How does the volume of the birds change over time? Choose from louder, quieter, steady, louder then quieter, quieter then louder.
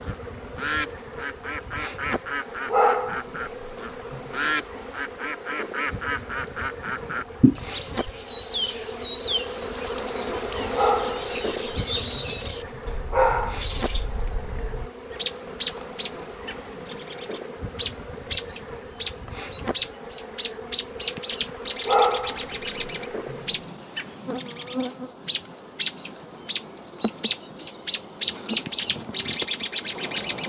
louder.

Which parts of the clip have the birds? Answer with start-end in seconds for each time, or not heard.
0.0-30.4.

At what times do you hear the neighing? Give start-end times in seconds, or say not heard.
7.4-8.1.